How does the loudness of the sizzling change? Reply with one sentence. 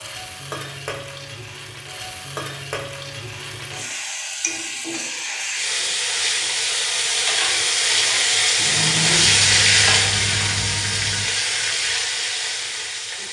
The loudness of the sizzling goes up, then down.